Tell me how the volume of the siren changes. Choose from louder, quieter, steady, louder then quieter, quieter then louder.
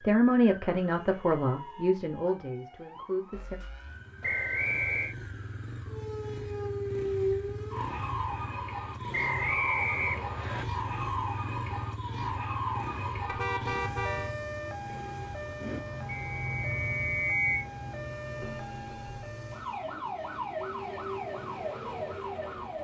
louder.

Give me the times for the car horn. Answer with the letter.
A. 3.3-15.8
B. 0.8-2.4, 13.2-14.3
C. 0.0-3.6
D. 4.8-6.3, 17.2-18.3
B.